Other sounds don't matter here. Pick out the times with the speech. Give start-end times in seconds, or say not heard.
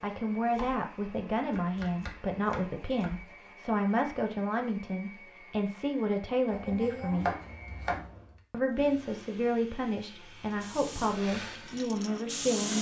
0.0-7.3, 8.5-12.7.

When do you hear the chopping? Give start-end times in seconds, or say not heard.
0.5-3.2, 6.5-8.1.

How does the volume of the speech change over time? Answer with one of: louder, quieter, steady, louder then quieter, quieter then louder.
steady.